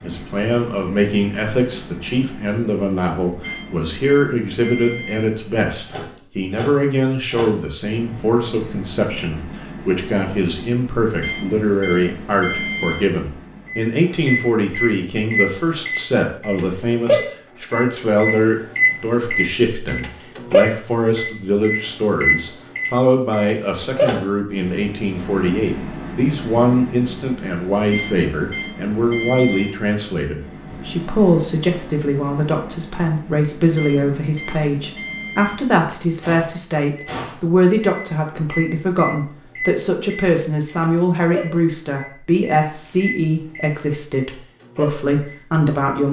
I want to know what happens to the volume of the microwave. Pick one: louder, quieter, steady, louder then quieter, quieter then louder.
louder then quieter.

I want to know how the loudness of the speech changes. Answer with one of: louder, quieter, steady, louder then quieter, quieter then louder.
steady.